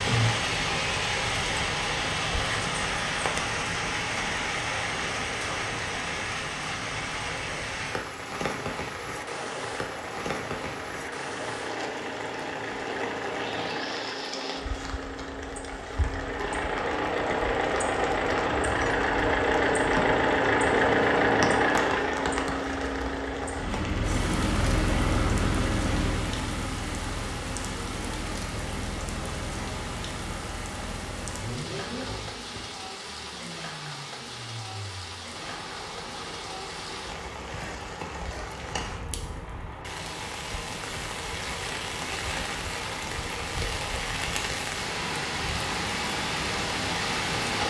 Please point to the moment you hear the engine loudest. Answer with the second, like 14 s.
21 s.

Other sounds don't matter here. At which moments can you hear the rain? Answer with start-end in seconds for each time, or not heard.
0.0-47.6.